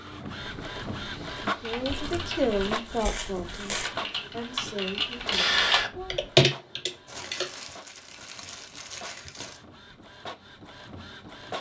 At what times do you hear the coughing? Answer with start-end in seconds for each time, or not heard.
not heard.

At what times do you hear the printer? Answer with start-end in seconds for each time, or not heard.
0.0-11.5.